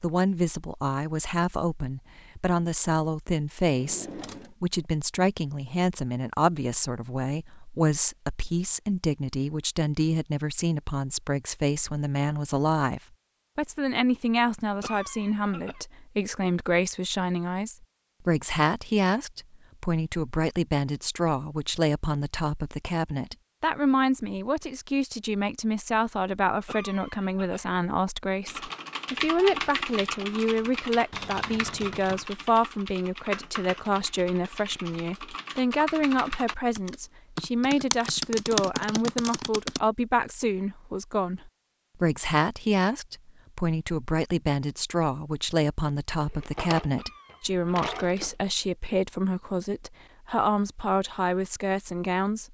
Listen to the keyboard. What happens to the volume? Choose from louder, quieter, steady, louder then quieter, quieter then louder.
quieter then louder.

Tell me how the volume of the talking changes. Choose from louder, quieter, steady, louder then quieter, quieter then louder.
steady.